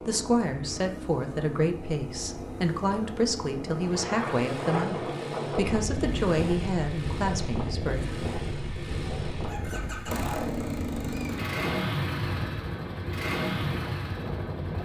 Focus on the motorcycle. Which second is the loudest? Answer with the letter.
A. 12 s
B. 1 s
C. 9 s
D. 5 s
A.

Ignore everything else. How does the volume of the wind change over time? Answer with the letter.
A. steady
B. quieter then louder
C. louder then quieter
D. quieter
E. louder
D.